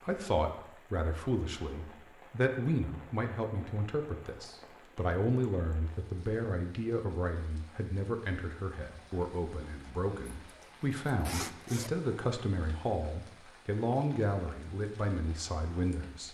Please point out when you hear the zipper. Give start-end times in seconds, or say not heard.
10.4-11.9.